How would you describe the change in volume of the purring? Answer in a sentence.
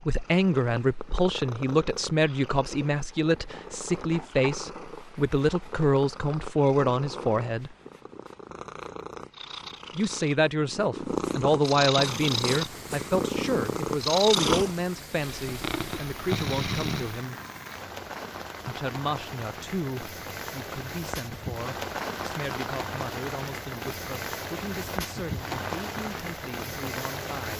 The volume of the purring goes up.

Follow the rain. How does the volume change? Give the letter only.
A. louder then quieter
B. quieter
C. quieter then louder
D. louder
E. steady
D.